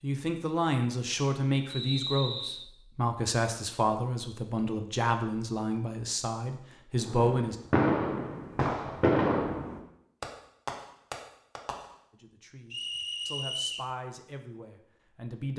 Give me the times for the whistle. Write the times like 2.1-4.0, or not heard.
1.6-2.7, 12.7-13.9.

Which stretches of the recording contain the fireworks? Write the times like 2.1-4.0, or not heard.
7.0-11.9.